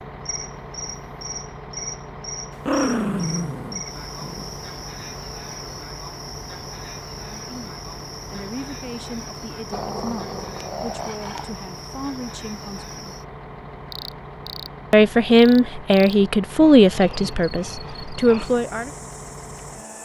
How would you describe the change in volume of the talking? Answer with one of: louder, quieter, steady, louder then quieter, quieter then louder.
louder then quieter.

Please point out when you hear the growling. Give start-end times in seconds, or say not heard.
2.6-4.5, 9.7-11.5, 16.6-18.6.